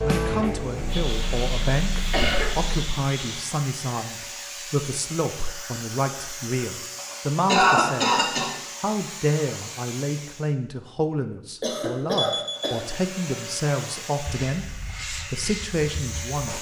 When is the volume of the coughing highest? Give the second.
8 s.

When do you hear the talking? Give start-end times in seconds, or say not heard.
0.0-8.1, 8.8-14.7, 15.3-16.5.